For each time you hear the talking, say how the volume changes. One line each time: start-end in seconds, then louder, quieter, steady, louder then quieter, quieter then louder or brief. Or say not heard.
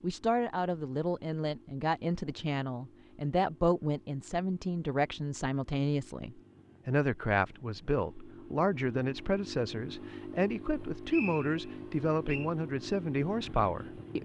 0.0-14.1 steady.